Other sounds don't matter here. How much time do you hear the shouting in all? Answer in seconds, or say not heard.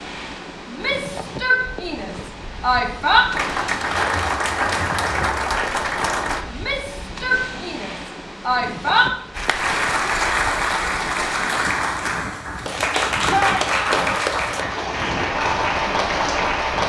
6 s.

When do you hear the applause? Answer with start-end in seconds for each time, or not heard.
3.3-6.5, 9.3-16.8.